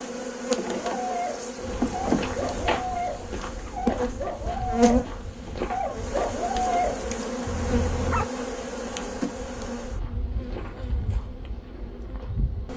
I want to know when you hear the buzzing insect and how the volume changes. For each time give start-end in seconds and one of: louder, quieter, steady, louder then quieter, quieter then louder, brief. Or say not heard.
0.0-12.7 quieter.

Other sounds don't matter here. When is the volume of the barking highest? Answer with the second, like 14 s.
7 s.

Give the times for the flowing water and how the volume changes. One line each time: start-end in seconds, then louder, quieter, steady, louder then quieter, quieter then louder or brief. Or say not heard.
not heard.